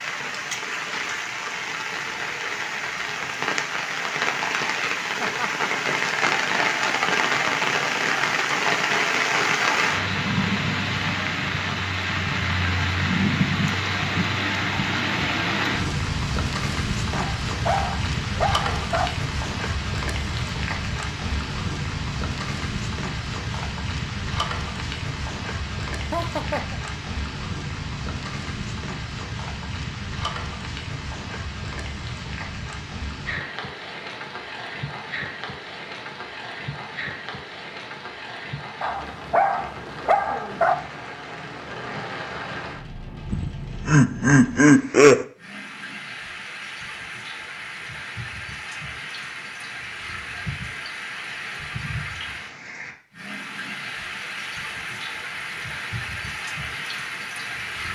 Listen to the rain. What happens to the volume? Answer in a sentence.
The volume of the rain goes down.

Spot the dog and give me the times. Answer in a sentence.
The dog can be heard from 17.1 to 19.1 s and from 38.8 to 40.8 s.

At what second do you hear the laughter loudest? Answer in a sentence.
The loudest moment of the laughter is at 45 seconds.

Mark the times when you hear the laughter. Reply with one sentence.
The laughter can be heard from 5.2 to 5.7 s, from 26.1 to 26.8 s and from 43.3 to 45.2 s.